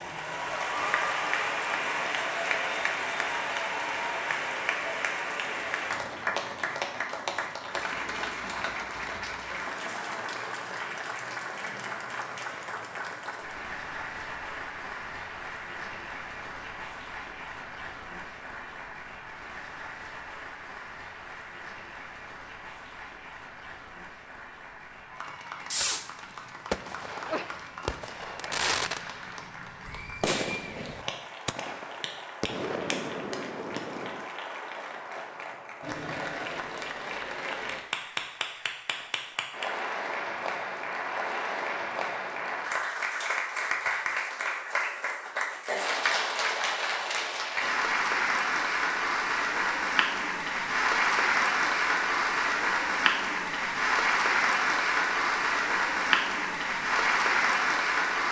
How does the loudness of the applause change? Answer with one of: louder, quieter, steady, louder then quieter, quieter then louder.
quieter then louder.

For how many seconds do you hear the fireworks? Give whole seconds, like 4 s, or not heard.
8 s.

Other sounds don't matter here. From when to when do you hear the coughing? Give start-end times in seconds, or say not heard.
not heard.